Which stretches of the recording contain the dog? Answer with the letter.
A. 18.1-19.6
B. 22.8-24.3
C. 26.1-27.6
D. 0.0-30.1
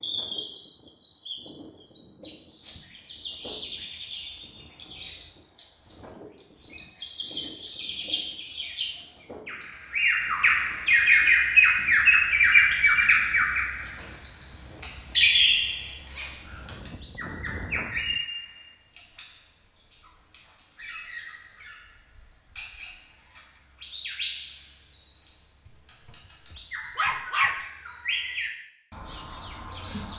C.